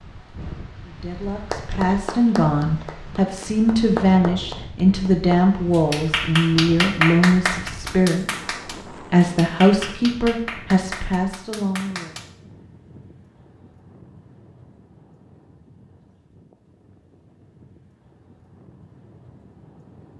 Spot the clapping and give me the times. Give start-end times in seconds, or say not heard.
1.5-12.3.